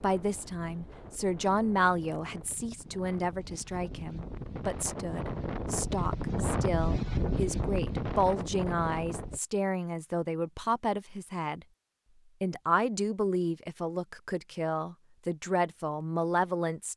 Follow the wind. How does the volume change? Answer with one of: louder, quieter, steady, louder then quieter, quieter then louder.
louder.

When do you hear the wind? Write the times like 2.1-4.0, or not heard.
0.0-9.4.